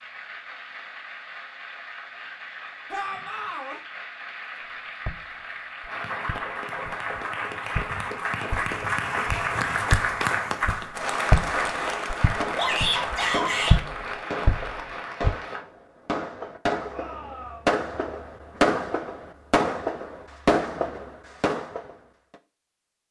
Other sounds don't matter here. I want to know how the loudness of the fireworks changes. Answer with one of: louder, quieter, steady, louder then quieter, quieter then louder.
louder.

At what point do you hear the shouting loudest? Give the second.
13 s.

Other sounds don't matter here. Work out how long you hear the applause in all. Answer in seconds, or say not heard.
16 s.